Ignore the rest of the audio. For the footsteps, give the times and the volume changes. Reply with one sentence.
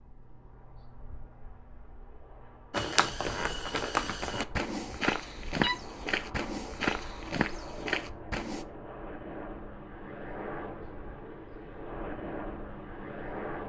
The footsteps can be heard from 2.7 to 8.7 s, at a steady volume.